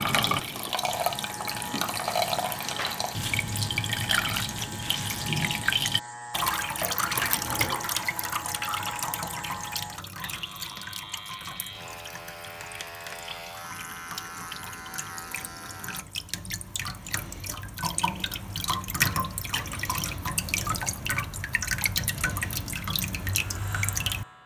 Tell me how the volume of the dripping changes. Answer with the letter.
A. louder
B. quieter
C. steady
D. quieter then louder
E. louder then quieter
D.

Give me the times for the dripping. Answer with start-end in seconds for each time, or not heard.
0.0-24.4.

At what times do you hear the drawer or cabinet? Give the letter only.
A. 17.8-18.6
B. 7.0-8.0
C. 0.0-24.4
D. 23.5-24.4
B.